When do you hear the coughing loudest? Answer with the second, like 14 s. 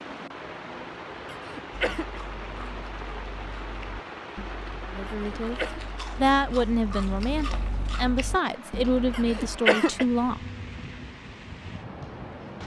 10 s.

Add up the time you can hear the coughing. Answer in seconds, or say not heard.
3 s.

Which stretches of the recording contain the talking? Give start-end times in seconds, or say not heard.
4.9-10.4.